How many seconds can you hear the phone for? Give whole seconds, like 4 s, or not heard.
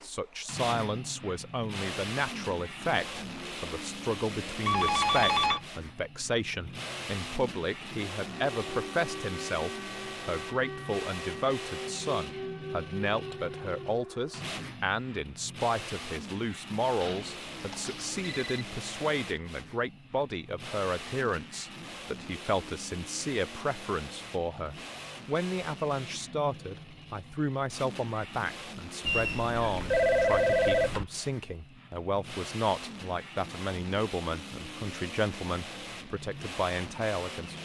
5 s.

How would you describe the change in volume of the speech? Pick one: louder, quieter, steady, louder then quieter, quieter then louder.
steady.